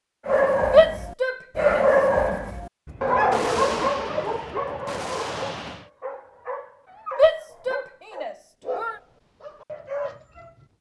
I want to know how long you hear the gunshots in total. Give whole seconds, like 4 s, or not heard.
3 s.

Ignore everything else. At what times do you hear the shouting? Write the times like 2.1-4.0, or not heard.
0.7-1.9, 7.2-8.9.